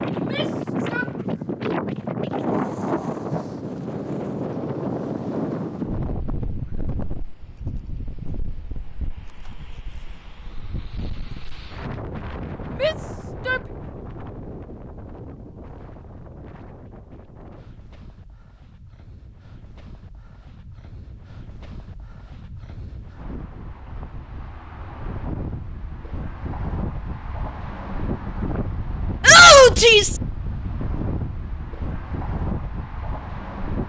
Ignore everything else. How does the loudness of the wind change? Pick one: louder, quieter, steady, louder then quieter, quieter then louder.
quieter then louder.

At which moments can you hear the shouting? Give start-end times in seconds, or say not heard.
0.1-1.1, 12.8-13.6, 29.2-30.2.